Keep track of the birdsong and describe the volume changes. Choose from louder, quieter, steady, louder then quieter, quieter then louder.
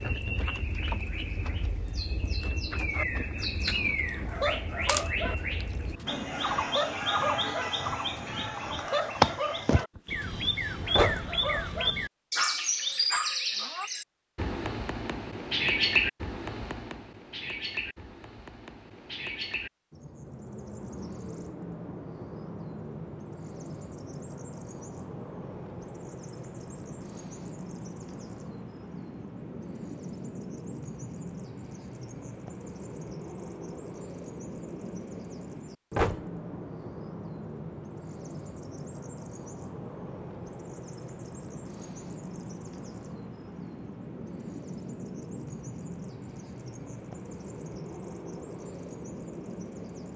quieter.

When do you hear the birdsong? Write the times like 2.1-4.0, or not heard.
0.0-50.1.